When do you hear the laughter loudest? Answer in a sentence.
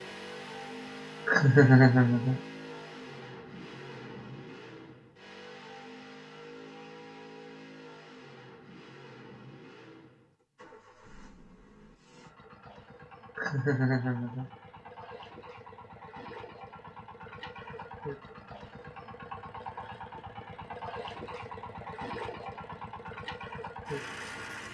The loudest moment of the laughter is at 2 seconds.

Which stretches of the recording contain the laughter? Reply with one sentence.
You can hear the laughter from 1.2 to 2.4 s and from 13.3 to 14.5 s.